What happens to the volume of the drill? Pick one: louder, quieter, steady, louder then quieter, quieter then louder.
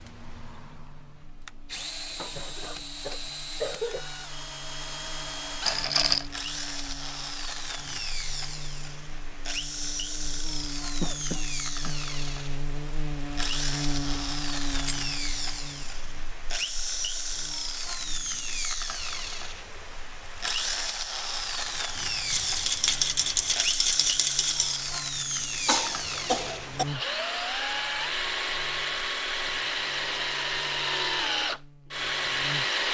louder.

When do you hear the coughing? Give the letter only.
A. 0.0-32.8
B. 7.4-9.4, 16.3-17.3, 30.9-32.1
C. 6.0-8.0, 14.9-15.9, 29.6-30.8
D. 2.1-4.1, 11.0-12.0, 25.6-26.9
D.